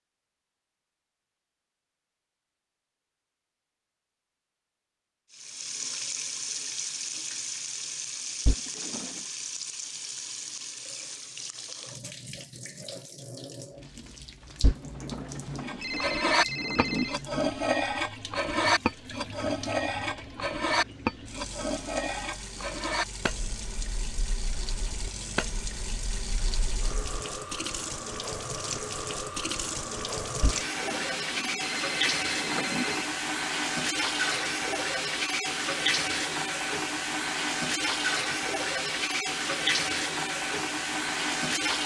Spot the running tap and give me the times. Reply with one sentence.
You can hear the running tap from 5.3 to 41.8 s.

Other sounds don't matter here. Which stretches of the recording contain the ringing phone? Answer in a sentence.
The ringing phone can be heard from 8.4 to 9.2 s, from 14.6 to 17.2 s and from 30.4 to 33.1 s.